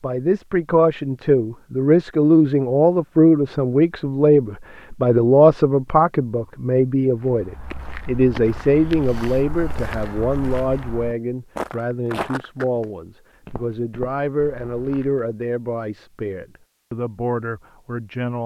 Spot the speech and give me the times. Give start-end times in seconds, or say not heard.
0.0-18.4.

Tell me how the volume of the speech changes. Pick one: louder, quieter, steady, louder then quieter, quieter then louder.
quieter.